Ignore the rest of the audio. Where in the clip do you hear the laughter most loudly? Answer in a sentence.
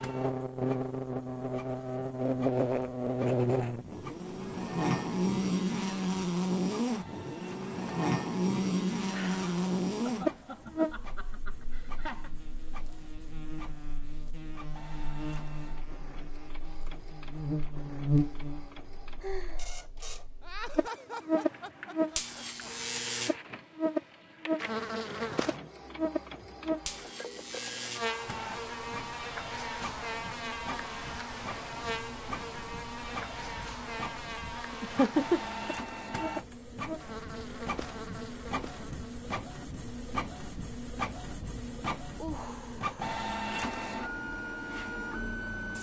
The volume of the laughter peaks at 35 seconds.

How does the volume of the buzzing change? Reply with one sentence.
The volume of the buzzing goes down.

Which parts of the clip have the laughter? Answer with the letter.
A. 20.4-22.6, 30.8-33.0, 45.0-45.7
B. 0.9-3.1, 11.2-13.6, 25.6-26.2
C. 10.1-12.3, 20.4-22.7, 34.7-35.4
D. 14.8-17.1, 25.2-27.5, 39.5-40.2
C.